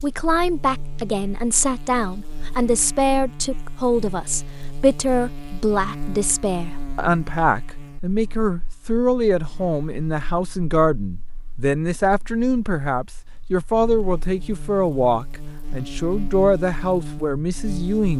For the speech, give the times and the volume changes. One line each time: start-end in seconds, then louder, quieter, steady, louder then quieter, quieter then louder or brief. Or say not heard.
0.0-18.1 steady.